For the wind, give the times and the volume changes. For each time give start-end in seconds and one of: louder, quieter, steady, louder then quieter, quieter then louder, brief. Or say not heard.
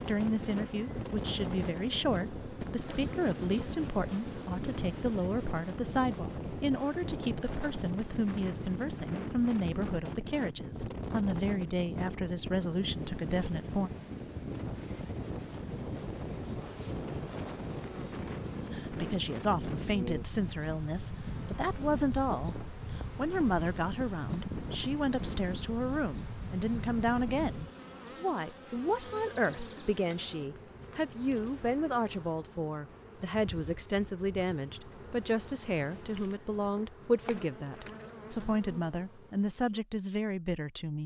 0.0-27.8 steady.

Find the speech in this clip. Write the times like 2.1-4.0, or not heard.
0.1-13.9, 18.7-41.0.